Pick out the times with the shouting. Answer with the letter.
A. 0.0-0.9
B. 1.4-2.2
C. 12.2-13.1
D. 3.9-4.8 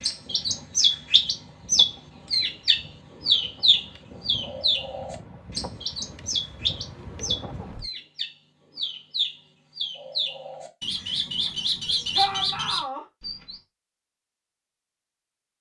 C.